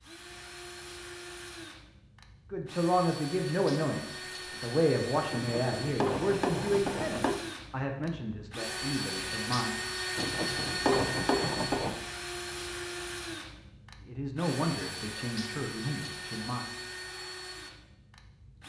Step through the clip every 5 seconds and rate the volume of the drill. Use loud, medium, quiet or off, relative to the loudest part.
medium, loud, loud, medium.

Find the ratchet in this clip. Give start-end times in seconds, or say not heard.
5.3-7.4, 10.2-12.0.